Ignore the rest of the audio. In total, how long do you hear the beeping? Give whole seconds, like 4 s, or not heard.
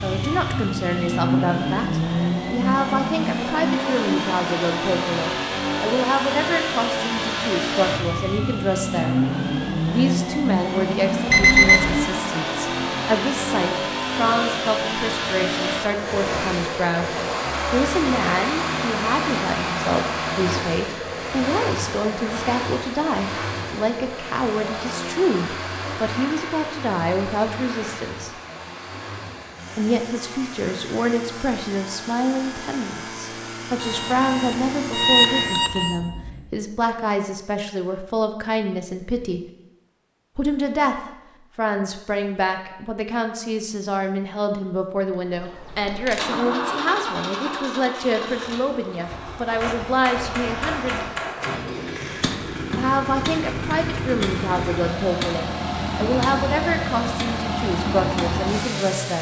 3 s.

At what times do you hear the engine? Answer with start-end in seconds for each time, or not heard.
0.0-36.5, 45.2-59.1.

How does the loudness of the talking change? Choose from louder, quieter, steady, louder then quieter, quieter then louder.
steady.